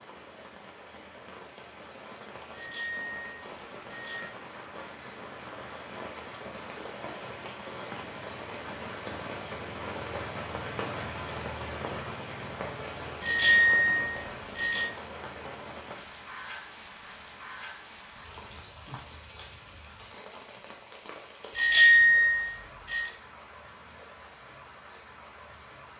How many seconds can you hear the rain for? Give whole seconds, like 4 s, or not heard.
26 s.